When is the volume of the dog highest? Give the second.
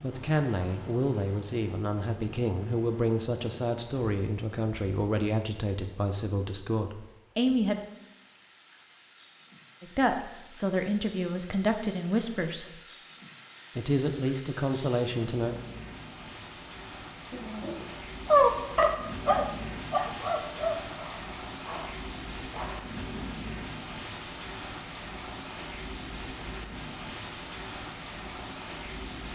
18 s.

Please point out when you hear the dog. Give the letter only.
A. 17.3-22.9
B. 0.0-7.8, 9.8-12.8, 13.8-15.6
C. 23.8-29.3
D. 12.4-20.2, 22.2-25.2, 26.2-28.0
A.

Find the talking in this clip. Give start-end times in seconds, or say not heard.
0.0-7.8, 9.8-12.8, 13.8-15.6.